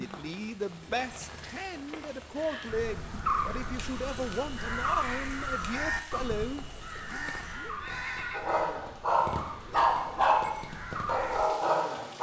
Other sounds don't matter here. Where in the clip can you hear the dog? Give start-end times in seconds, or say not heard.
8.3-12.1.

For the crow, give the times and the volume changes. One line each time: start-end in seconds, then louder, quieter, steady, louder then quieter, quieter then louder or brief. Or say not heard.
2.6-11.5 quieter.